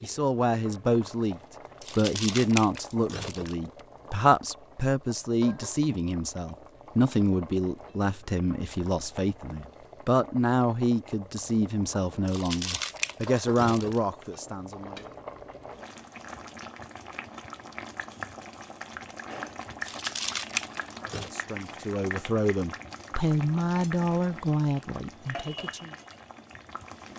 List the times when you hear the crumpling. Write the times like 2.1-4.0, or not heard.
1.8-3.5, 12.2-14.0, 19.8-21.4.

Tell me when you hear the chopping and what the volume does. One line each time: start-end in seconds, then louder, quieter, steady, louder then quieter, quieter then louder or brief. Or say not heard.
not heard.